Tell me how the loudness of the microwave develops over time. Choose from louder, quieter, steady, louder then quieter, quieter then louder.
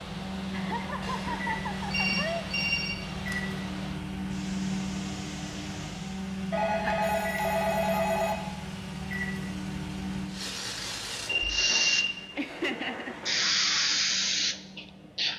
quieter.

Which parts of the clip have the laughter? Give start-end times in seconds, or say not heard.
0.5-2.5, 6.7-7.1, 12.3-13.2.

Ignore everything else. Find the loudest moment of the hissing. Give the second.
14 s.